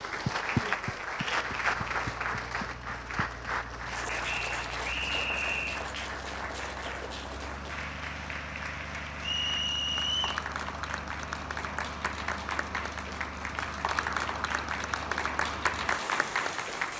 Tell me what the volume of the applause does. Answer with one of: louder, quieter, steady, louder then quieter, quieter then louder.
quieter then louder.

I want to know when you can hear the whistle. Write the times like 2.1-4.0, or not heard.
4.2-5.8, 9.2-10.4.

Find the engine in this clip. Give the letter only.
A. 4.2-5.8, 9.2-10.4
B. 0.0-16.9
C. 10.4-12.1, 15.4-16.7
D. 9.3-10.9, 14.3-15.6
B.